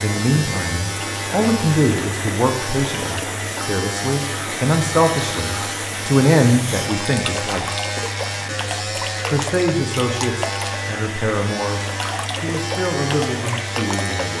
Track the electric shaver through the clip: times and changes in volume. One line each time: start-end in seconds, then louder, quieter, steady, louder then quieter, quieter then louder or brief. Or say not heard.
0.0-14.3 steady.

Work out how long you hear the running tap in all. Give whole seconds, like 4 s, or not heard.
14 s.